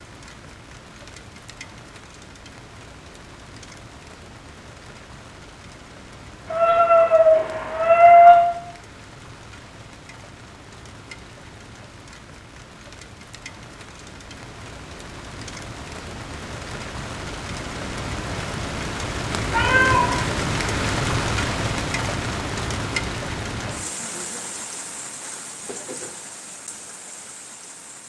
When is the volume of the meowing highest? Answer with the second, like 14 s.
8 s.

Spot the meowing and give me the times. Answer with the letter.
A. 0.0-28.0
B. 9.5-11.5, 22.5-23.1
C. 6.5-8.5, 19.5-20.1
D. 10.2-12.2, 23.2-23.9
C.